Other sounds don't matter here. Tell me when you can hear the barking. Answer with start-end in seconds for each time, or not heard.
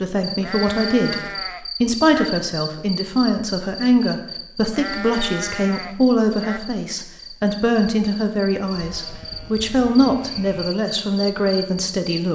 not heard.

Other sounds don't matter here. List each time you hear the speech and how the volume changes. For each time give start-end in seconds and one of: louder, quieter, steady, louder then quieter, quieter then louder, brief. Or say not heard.
0.0-12.3 steady.